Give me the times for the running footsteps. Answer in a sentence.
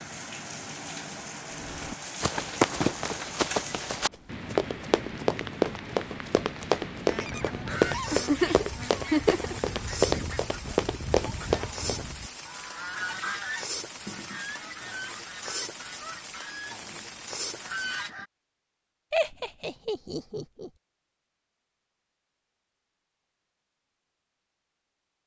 You can hear the running footsteps from 1.6 to 12.1 s.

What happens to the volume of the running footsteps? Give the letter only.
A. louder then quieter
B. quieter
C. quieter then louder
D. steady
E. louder
D.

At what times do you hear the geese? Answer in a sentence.
The geese can be heard from 7.0 to 18.3 s.